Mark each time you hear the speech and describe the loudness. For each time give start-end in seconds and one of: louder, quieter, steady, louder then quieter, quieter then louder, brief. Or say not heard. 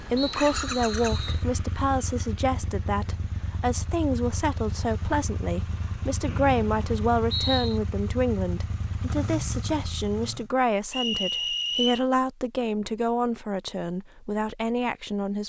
0.0-15.4 steady.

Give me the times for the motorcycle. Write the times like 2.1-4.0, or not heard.
0.0-10.5.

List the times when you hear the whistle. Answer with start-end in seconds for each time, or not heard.
0.1-1.4, 6.2-7.8, 10.9-12.1.